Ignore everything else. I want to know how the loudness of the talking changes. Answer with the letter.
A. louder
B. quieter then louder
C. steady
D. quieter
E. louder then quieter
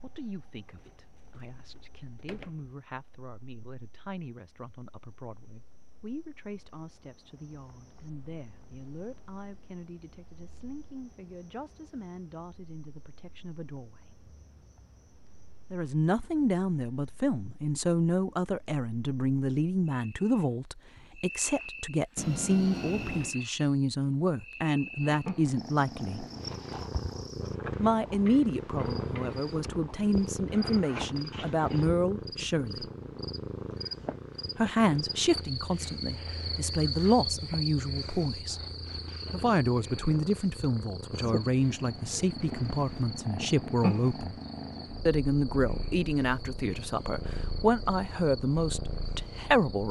A.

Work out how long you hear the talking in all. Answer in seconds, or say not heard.
44 s.